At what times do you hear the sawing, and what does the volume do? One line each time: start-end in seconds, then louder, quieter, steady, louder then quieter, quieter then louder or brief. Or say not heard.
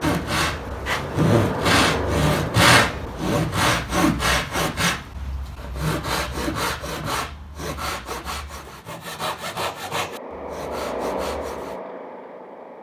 0.0-11.8 quieter.